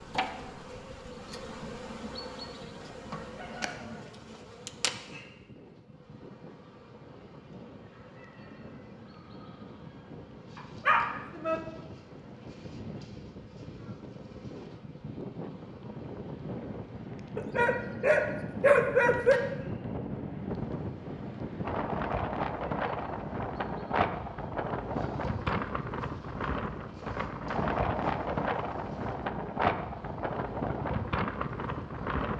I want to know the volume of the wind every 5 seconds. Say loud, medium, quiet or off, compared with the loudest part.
quiet, quiet, quiet, medium, loud, loud, loud.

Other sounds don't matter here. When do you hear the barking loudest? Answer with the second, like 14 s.
19 s.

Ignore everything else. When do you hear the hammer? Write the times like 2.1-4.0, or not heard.
not heard.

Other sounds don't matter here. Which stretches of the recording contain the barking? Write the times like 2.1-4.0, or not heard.
10.6-11.6, 17.4-19.4.